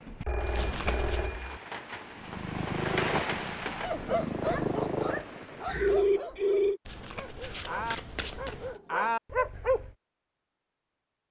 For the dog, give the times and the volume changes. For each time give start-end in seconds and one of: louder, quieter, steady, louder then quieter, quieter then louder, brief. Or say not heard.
3.8-9.9 quieter then louder.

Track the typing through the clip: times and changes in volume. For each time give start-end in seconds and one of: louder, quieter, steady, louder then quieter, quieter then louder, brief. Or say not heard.
not heard.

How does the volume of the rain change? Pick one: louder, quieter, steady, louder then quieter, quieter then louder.
louder then quieter.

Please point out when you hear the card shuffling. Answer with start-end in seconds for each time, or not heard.
0.5-1.3, 6.8-8.8.